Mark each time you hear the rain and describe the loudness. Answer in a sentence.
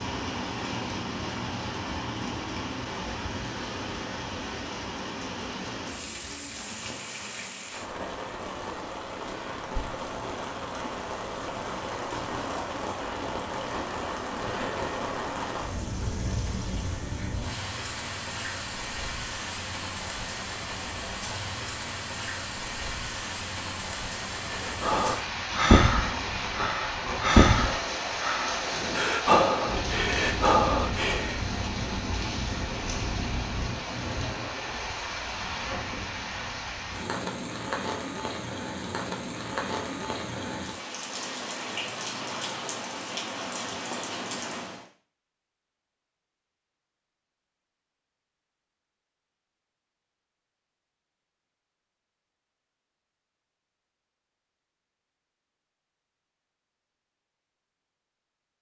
You can hear the rain from 0.0 to 44.9 s, at a steady volume.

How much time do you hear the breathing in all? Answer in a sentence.
You can hear the breathing for 7 seconds altogether.